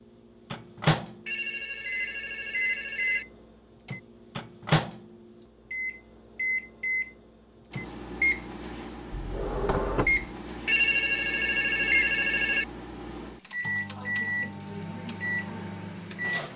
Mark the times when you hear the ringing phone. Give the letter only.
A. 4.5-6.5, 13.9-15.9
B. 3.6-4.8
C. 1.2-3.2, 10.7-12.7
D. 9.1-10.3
C.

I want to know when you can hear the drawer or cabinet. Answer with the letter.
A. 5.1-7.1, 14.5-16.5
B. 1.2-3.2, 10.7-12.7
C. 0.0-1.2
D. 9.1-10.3
D.